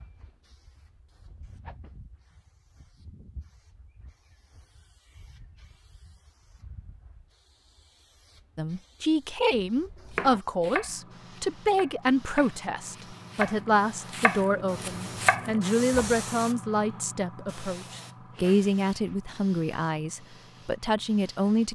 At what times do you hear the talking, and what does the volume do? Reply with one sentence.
You can hear the talking from 8.6 to 21.7 s, at a steady volume.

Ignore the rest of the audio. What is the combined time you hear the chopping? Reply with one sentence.
You can hear the chopping for 6 seconds altogether.